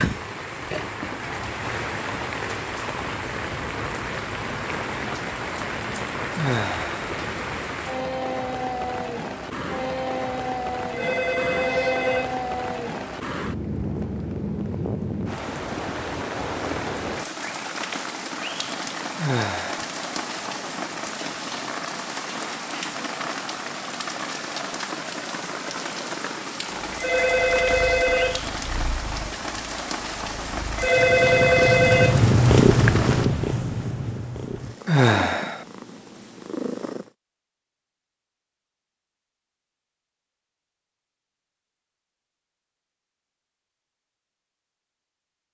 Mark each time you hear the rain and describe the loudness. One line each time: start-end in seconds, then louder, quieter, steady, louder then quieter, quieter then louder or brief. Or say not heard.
0.0-33.3 steady.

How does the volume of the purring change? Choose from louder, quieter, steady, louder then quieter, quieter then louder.
louder then quieter.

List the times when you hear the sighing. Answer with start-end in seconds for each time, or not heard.
6.3-7.0, 19.1-19.9, 34.9-35.6.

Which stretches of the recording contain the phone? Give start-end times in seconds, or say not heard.
10.9-12.4, 26.9-28.4, 30.8-32.2.